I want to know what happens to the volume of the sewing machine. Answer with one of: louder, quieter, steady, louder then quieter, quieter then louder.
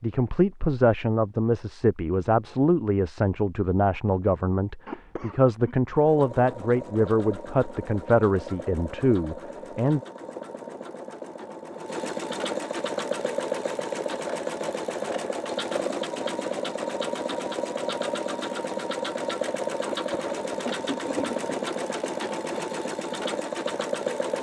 louder.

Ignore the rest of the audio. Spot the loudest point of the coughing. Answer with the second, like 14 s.
21 s.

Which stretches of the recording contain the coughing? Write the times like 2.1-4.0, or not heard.
4.8-5.8, 19.9-21.6.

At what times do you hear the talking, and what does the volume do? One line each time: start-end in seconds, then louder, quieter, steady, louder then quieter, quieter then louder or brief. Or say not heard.
0.0-10.0 steady.